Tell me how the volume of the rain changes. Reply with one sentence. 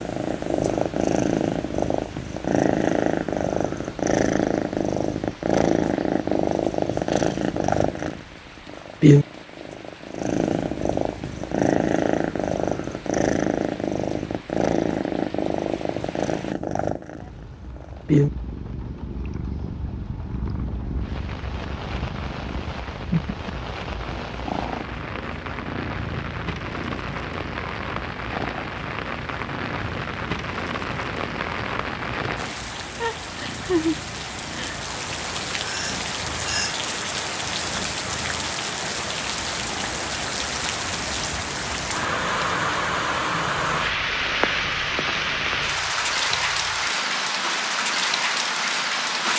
The volume of the rain goes up.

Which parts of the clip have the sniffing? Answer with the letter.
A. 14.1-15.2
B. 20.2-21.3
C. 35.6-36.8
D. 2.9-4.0
C.